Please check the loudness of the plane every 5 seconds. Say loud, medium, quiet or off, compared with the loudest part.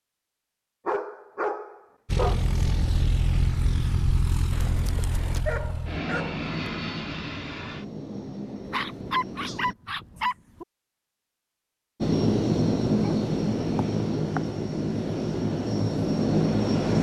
medium, medium, loud, loud.